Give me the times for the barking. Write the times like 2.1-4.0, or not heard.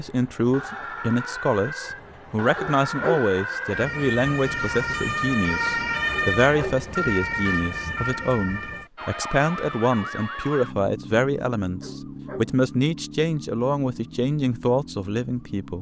2.5-3.3, 6.1-6.8, 11.8-12.6.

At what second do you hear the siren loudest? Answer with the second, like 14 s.
6 s.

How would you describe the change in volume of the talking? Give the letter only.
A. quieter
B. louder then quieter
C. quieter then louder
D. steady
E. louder
D.